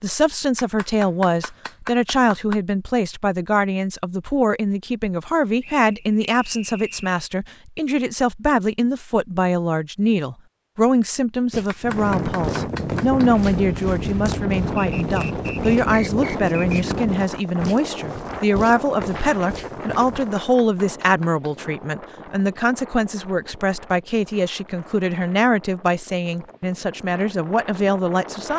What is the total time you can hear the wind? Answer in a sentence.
You can hear the wind for 17 seconds altogether.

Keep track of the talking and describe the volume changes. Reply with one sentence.
The volume of the talking stays about the same.